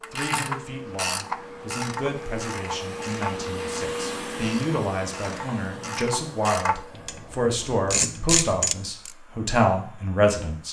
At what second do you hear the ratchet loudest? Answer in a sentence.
The volume of the ratchet peaks at 8 seconds.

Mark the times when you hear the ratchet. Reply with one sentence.
You can hear the ratchet from 0.0 to 9.1 s.